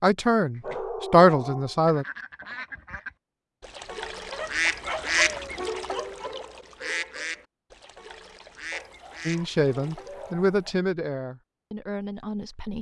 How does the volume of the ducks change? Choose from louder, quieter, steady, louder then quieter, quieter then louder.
louder then quieter.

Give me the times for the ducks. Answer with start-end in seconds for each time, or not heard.
1.9-10.3.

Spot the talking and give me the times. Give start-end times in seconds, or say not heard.
0.0-2.0, 9.2-12.7.